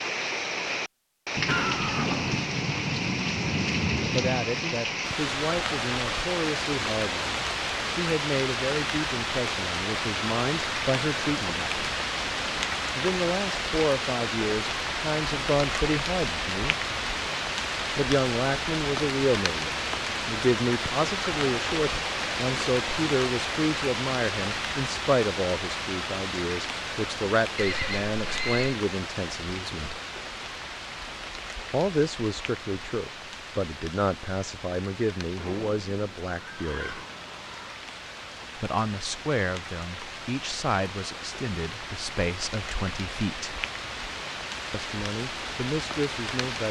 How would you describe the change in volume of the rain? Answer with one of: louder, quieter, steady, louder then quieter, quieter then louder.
quieter.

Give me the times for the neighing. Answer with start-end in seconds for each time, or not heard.
1.4-2.4, 27.6-28.8, 35.4-37.8.